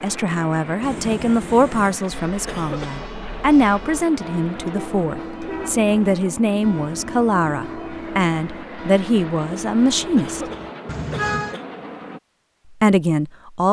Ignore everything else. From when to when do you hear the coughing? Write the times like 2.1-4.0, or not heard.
2.5-3.0, 10.2-11.7.